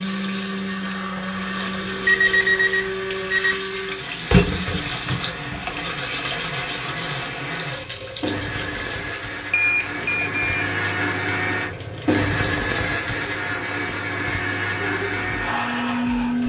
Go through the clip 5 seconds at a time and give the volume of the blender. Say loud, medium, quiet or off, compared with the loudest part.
medium, medium, loud, loud.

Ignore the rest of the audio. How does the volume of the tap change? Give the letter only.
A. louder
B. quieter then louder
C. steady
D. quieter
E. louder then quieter
E.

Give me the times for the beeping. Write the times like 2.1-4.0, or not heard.
1.6-3.5, 9.5-10.7.